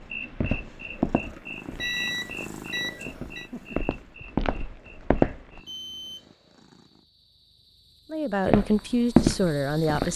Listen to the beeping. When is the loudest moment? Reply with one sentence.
The loudest moment of the beeping is at 2 seconds.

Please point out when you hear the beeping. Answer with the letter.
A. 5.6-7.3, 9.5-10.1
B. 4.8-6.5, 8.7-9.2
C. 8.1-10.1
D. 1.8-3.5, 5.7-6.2
D.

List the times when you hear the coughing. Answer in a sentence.
The coughing can't be heard in this clip.